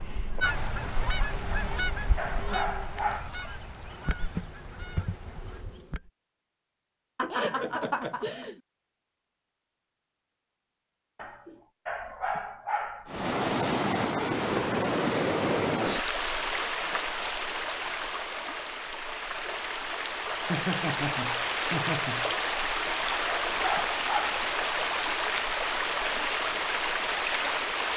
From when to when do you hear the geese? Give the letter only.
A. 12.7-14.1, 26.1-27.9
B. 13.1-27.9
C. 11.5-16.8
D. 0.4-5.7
D.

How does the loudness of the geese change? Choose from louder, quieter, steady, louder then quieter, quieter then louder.
quieter.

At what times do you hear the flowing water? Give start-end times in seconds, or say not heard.
13.1-27.9.